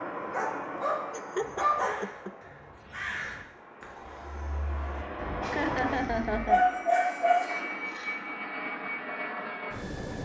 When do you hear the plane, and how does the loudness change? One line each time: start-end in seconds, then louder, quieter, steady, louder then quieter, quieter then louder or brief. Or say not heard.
0.0-10.2 quieter then louder.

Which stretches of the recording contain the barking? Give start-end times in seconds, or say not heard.
0.1-2.0, 6.5-8.1.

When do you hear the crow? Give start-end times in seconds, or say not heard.
1.4-6.5.